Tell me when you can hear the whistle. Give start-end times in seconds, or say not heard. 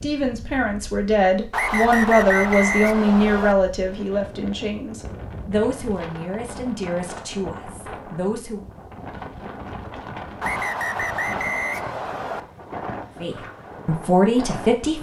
1.5-3.5, 10.4-12.4.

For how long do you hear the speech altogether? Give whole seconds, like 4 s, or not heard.
10 s.